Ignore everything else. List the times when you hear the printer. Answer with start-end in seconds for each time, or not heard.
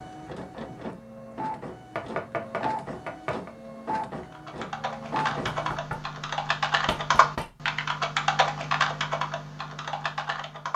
0.0-5.8.